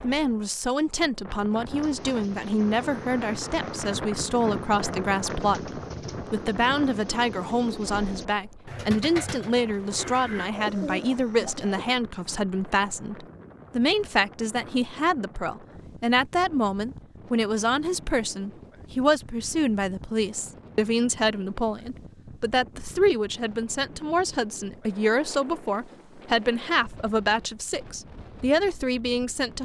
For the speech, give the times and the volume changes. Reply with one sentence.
The speech can be heard from 0.0 to 29.6 s, at a steady volume.